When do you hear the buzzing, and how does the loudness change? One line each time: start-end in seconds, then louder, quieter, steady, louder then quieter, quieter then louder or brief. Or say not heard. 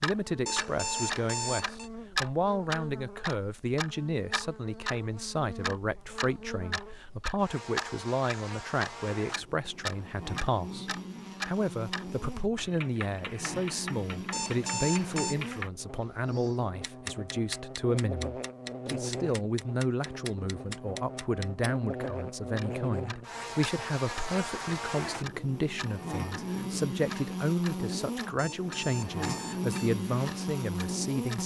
0.1-31.4 louder.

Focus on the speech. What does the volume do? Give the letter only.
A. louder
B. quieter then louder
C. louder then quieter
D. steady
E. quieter
D.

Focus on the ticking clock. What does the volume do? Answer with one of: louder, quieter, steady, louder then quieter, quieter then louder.
quieter.